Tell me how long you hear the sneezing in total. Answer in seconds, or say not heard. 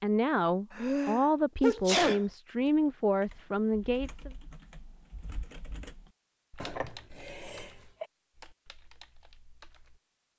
3 s.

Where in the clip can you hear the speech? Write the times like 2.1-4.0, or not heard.
0.0-4.3.